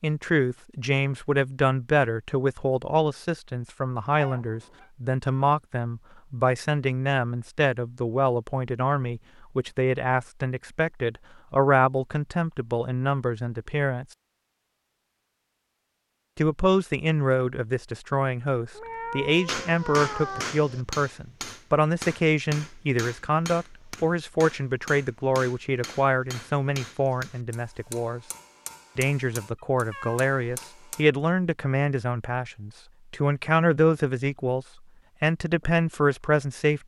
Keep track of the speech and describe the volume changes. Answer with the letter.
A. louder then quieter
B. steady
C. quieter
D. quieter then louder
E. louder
B.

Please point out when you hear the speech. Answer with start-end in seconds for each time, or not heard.
0.0-14.1, 16.4-28.2, 28.9-36.8.